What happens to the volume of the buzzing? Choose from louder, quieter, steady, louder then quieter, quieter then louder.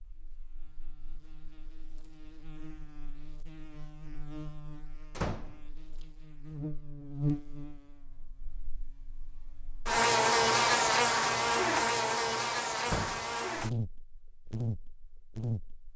louder then quieter.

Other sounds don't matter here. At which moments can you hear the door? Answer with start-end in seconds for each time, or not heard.
5.2-5.6, 12.8-13.3.